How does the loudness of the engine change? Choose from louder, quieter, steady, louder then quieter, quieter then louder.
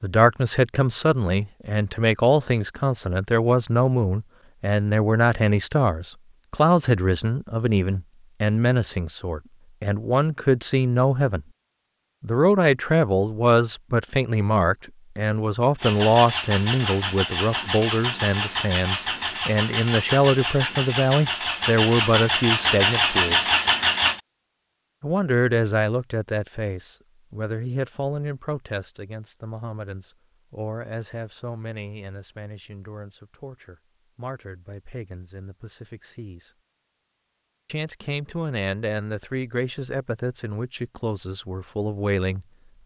louder.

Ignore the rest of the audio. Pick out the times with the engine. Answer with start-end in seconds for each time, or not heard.
15.8-24.2.